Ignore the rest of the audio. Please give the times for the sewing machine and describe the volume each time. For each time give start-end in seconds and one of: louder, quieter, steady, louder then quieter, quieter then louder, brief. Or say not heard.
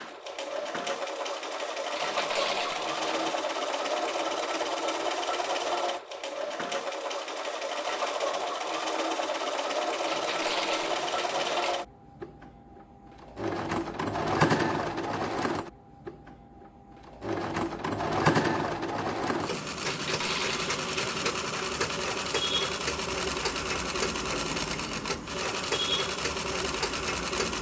0.0-27.5 steady.